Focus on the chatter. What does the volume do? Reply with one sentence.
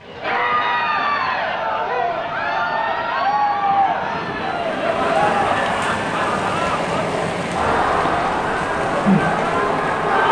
The volume of the chatter stays about the same.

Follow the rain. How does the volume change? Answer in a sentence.
The volume of the rain goes up.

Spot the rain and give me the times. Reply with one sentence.
You can hear the rain from 0.0 to 10.2 s.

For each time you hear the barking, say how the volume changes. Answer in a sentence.
The barking can't be heard in this clip.